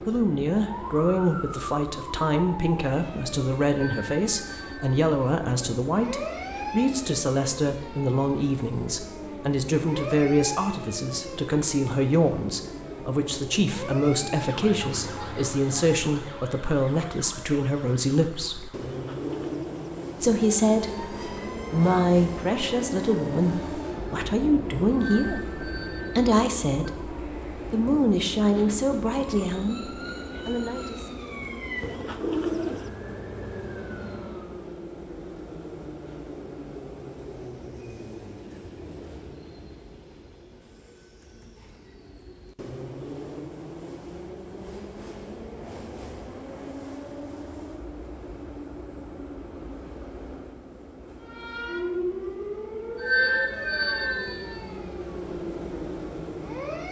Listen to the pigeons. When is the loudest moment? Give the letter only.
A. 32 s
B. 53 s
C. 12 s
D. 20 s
A.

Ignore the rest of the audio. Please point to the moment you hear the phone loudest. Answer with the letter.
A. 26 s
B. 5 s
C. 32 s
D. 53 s
D.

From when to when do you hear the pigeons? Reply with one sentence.
You can hear the pigeons from 18.9 to 19.9 s and from 31.8 to 32.9 s.